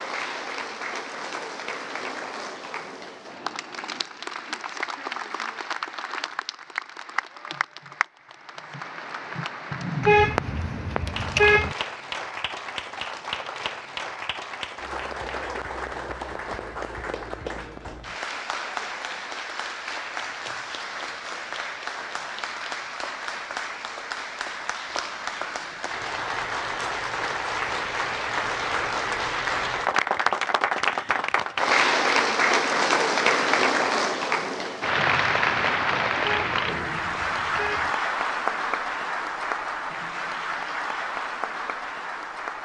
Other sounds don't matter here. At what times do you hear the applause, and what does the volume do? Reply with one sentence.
The applause can be heard from 0.0 to 42.6 s, getting louder.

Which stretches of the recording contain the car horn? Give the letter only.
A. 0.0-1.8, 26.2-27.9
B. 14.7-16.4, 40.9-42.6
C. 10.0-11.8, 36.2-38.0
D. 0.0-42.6
C.